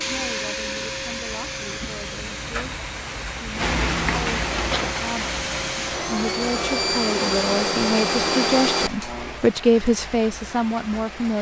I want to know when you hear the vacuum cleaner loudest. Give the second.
8 s.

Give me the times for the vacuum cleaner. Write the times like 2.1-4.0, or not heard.
0.0-9.4.